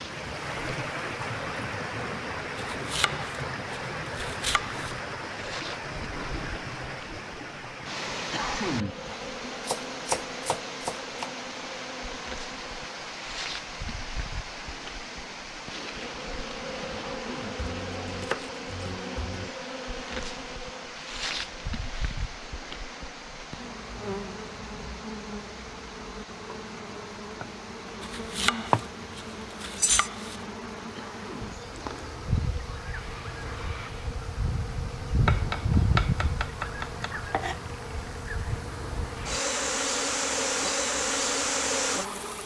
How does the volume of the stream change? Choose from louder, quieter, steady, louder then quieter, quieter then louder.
quieter.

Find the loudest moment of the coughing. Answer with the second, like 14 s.
9 s.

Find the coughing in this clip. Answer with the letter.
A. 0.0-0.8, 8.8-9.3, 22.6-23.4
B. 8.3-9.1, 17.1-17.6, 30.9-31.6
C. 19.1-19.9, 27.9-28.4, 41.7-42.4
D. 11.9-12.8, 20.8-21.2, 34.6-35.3
B.